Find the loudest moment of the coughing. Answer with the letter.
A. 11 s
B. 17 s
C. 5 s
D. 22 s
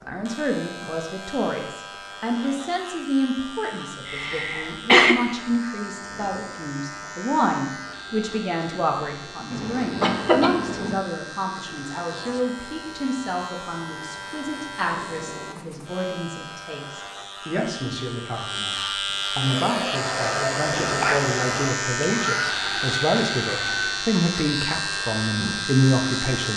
C.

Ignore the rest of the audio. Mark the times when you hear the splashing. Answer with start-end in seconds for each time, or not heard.
not heard.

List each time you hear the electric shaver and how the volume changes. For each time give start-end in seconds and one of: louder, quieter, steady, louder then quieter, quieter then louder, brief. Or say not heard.
0.0-26.5 louder.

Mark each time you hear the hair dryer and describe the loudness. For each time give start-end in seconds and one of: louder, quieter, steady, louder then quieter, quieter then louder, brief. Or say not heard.
19.4-24.0 steady.